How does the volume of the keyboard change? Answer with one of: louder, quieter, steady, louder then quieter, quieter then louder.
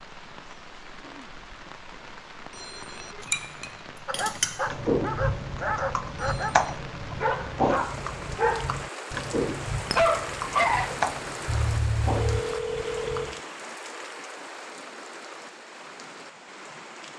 quieter.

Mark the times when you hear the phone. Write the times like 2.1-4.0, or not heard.
2.5-3.2, 6.2-6.7, 12.2-13.4.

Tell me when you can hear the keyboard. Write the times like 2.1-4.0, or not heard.
4.7-13.3.